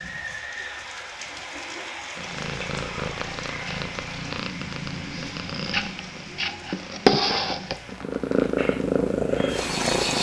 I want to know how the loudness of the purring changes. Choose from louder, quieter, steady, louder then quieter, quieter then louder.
louder.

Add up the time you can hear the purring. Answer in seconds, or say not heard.
8 s.